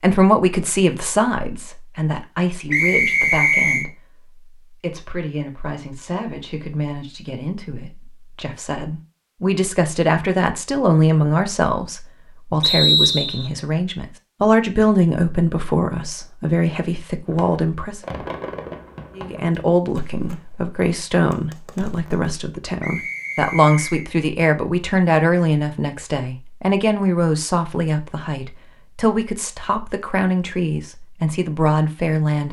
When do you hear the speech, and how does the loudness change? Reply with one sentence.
The speech can be heard from 0.0 to 18.0 s, getting quieter then louder; and from 19.1 to 32.4 s, at a steady volume.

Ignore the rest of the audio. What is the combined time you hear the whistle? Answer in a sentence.
You can hear the whistle for 3 seconds altogether.